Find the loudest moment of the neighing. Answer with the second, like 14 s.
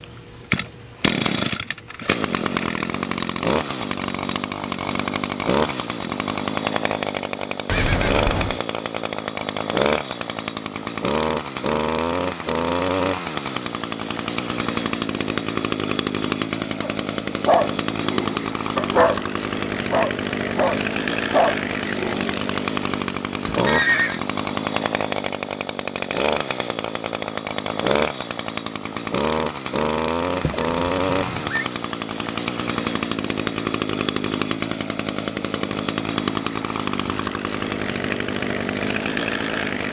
24 s.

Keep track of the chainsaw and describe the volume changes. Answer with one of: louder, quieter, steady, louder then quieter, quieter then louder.
steady.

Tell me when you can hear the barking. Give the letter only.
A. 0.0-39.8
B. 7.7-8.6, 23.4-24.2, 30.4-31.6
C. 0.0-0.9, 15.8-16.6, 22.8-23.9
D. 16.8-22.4
D.